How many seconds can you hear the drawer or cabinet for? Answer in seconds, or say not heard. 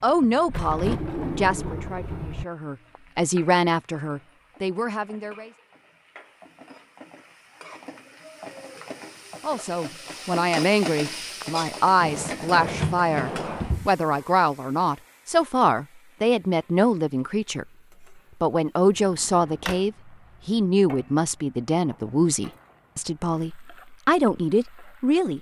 5 s.